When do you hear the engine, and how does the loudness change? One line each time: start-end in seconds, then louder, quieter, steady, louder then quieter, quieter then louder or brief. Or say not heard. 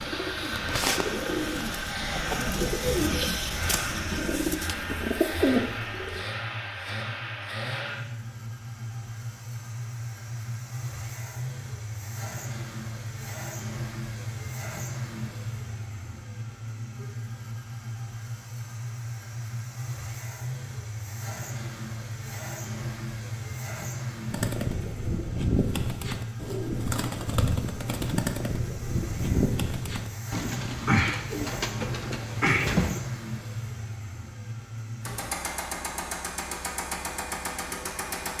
0.0-38.3 steady.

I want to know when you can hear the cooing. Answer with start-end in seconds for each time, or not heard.
0.0-6.2, 24.3-33.0.